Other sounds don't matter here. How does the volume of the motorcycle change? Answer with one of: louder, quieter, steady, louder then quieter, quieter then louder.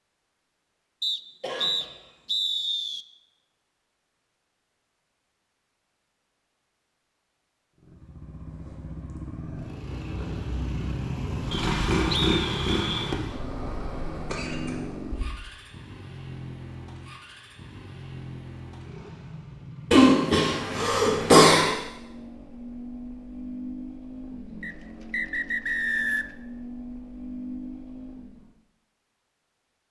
quieter.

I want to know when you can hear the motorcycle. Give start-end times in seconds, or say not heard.
7.8-28.5.